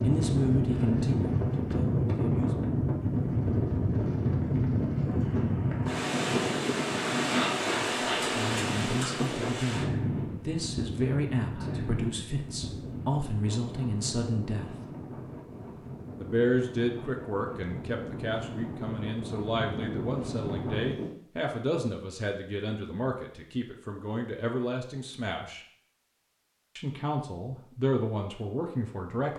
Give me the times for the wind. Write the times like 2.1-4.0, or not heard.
0.0-21.1.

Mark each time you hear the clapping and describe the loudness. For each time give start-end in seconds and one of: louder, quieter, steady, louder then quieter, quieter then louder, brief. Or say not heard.
not heard.